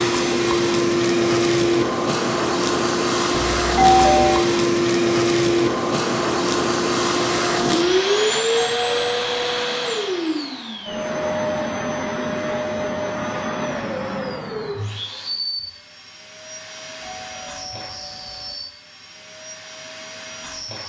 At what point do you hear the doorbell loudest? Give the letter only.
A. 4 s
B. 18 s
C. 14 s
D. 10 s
A.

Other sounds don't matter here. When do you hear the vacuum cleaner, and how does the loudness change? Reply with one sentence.
You can hear the vacuum cleaner from 0.0 to 20.8 s, getting quieter.